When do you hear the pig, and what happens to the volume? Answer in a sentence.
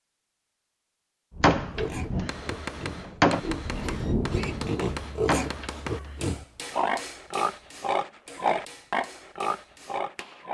The pig can be heard from 1.6 to 10.4 s, getting louder.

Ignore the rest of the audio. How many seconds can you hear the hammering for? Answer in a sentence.
You can hear the hammering for 8 seconds altogether.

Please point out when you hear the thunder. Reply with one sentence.
The thunder can be heard from 1.3 to 5.1 s.